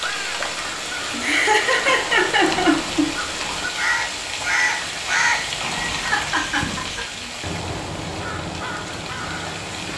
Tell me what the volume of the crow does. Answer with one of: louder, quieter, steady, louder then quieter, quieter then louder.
louder then quieter.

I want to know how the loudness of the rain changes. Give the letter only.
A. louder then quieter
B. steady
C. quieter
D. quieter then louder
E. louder
C.